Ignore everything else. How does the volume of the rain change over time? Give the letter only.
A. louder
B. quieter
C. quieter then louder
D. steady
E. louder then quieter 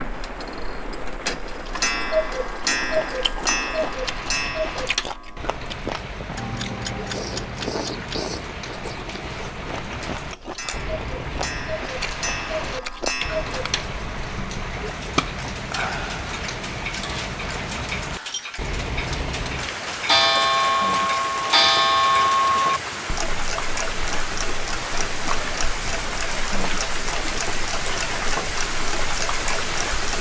A.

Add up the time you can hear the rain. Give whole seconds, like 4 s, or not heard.
30 s.